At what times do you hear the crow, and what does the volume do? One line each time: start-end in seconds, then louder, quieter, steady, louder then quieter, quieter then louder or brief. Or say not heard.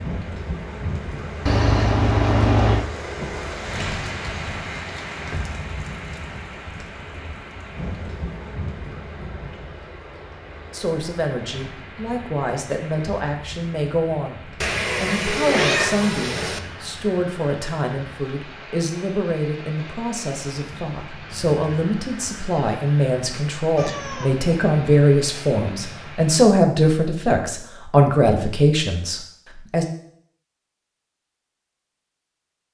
not heard.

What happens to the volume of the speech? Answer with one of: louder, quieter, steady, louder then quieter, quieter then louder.
louder.